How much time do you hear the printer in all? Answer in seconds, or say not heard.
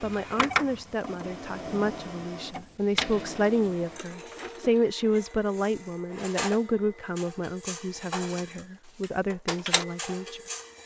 11 s.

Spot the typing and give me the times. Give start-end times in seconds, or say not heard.
not heard.